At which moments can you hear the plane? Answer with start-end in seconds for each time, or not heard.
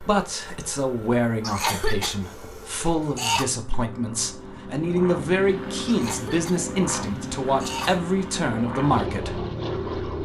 0.0-10.2.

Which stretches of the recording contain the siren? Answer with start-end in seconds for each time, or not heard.
not heard.